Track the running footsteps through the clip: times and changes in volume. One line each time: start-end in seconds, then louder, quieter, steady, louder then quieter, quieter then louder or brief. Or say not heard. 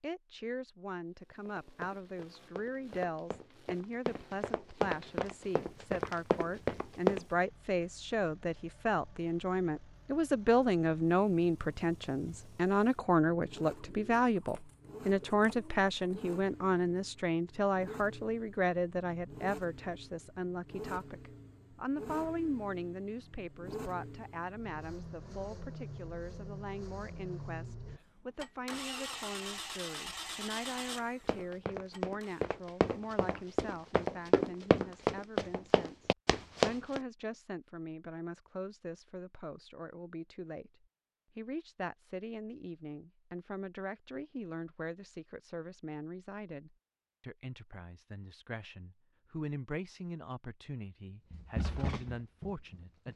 1.4-7.2 louder
31.2-37.0 louder then quieter
51.2-53.1 brief.